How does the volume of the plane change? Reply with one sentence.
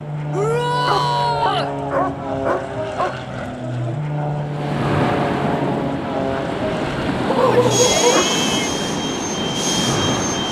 The loudness of the plane stays about the same.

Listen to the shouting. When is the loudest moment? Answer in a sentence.
The volume of the shouting peaks at 1 second.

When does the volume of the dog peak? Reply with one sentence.
The volume of the dog peaks at 8 seconds.